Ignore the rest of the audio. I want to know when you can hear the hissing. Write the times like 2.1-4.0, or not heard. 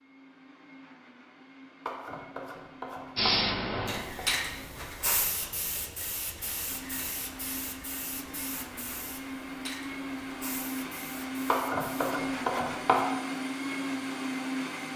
3.1-12.2.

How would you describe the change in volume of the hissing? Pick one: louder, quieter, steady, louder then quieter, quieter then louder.
quieter.